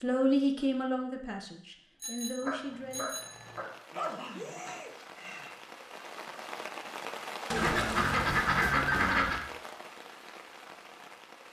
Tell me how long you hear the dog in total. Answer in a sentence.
The dog can be heard for 3 seconds in total.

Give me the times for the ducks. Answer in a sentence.
You can hear the ducks from 7.5 to 9.4 s.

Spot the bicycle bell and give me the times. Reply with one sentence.
You can hear the bicycle bell from 2.0 to 3.6 s.